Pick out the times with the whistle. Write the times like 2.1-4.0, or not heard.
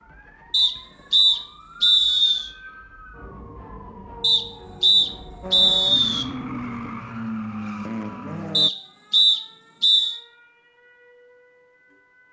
0.5-2.5, 4.2-6.2, 8.6-10.2.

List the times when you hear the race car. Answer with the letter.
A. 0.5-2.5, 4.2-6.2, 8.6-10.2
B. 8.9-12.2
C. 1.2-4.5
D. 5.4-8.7
D.